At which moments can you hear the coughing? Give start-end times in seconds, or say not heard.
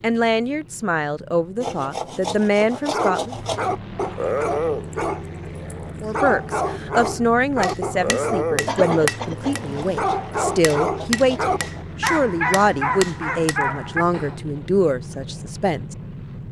8.7-9.6.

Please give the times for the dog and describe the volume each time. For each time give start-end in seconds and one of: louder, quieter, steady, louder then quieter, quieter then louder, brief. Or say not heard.
2.9-14.4 steady.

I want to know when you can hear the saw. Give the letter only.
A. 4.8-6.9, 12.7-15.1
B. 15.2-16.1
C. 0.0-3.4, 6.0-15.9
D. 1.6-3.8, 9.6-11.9
D.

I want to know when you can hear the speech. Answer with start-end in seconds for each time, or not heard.
0.0-3.4, 6.0-15.9.